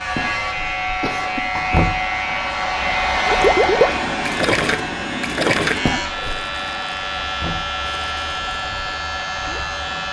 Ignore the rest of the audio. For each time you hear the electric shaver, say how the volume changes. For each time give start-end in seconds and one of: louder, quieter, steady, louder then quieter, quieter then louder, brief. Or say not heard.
0.0-10.0 steady.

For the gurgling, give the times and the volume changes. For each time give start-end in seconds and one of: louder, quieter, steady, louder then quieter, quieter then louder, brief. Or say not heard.
3.2-9.7 quieter.